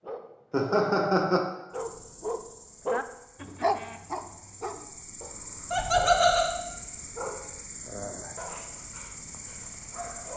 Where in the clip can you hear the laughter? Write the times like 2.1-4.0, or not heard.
0.5-1.4, 5.7-6.5.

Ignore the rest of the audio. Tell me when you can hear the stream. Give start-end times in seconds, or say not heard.
not heard.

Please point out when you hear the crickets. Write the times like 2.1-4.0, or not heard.
1.7-10.3.